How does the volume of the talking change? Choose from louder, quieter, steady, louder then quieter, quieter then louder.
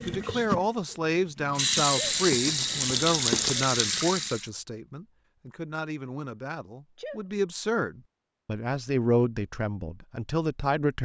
quieter then louder.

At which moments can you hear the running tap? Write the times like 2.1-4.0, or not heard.
0.0-4.5.